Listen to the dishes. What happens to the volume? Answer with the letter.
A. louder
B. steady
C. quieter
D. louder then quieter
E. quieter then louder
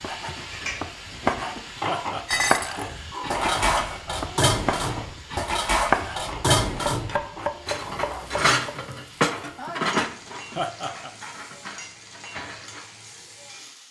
C.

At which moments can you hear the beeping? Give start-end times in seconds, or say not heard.
not heard.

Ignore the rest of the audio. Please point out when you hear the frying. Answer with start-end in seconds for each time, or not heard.
0.0-13.8.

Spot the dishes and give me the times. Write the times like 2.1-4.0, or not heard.
2.2-12.8.